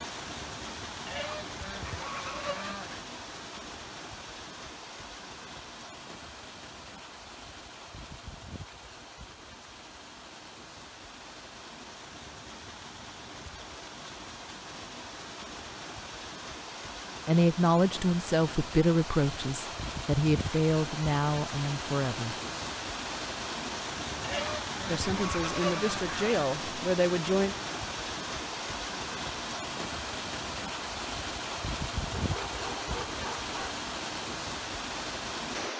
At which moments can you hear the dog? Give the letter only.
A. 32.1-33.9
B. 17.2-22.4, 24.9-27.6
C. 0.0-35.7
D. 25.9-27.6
A.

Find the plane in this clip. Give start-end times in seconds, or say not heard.
not heard.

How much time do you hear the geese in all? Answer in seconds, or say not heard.
4 s.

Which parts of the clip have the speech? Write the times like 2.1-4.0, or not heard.
17.2-22.4, 24.9-27.6.